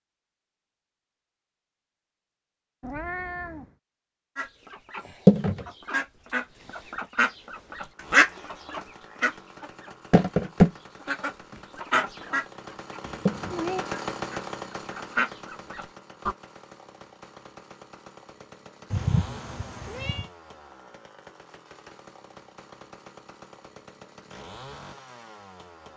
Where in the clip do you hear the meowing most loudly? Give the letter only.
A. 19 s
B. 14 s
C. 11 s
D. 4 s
A.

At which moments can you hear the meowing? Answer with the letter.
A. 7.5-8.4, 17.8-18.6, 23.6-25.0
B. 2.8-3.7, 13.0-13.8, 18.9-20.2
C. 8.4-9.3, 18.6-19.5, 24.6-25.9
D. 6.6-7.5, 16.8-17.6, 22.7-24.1
B.